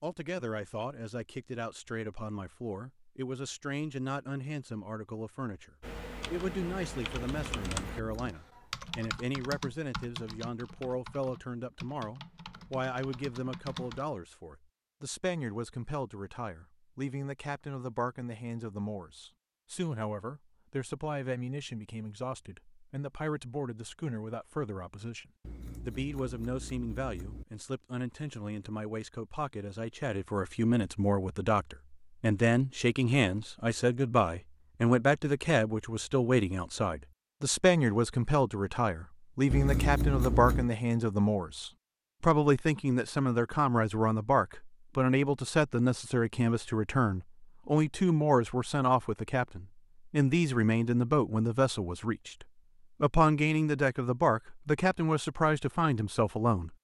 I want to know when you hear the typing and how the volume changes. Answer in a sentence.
You can hear the typing from 5.8 to 14.1 s, getting quieter.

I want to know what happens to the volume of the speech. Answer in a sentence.
The volume of the speech goes up.